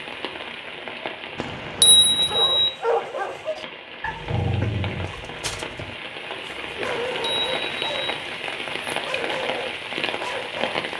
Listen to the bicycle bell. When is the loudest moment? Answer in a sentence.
The volume of the bicycle bell peaks at 2 seconds.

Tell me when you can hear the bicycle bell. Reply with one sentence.
You can hear the bicycle bell from 1.4 to 2.7 s and from 6.8 to 8.1 s.